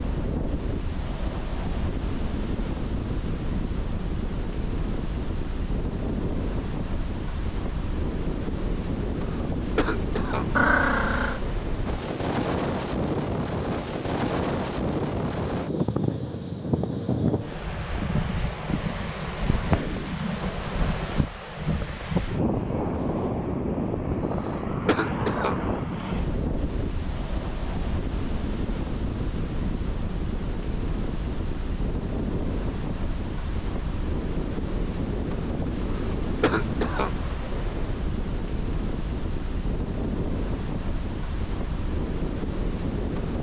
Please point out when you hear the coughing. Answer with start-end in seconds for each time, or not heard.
9.2-10.5, 24.4-25.6, 35.9-37.1.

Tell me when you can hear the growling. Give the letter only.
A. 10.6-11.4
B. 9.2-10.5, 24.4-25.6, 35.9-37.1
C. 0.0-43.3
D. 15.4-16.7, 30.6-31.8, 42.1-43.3
A.